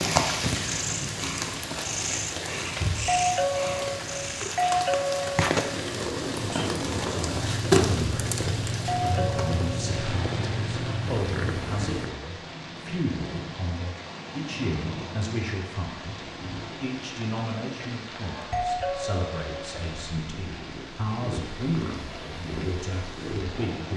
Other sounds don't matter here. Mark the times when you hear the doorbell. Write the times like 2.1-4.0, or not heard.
3.0-5.5, 8.8-9.9, 18.4-19.6.